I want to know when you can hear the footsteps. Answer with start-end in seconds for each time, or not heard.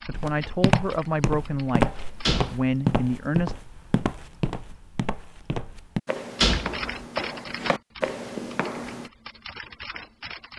0.1-9.1.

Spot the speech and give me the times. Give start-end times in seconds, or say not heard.
0.1-3.5.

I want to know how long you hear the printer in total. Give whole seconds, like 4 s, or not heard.
not heard.